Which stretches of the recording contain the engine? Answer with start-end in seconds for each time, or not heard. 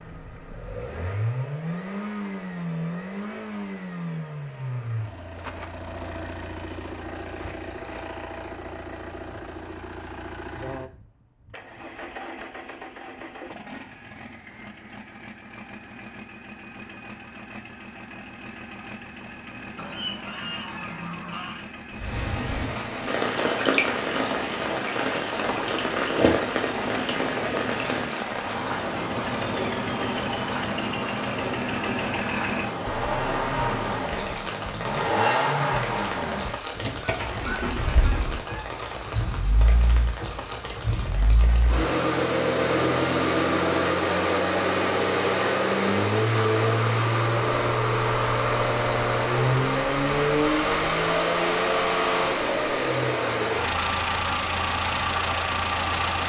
0.0-56.2.